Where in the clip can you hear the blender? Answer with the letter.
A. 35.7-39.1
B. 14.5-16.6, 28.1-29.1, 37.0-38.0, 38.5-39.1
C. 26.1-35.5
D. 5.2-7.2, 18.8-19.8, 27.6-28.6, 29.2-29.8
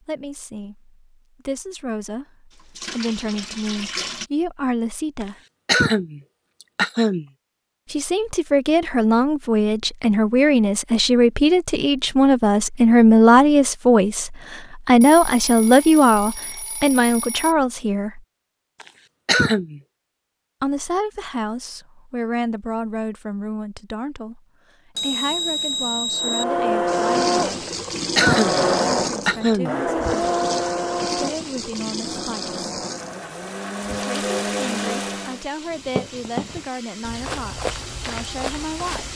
C.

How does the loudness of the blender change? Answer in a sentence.
The loudness of the blender goes down, then up.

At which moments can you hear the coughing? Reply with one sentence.
The coughing can be heard from 5.2 to 7.2 s, from 18.8 to 19.8 s, from 27.6 to 28.6 s and from 29.2 to 29.8 s.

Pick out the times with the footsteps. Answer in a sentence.
You can hear the footsteps from 35.7 to 39.1 s.